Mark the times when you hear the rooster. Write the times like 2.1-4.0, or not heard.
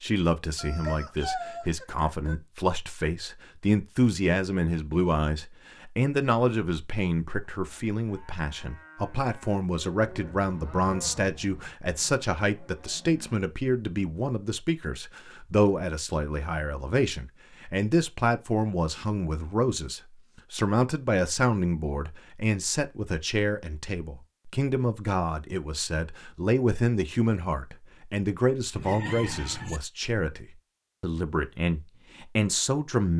0.6-2.4, 28.8-29.8.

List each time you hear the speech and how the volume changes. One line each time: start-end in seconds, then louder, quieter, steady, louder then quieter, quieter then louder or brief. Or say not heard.
0.0-33.1 steady.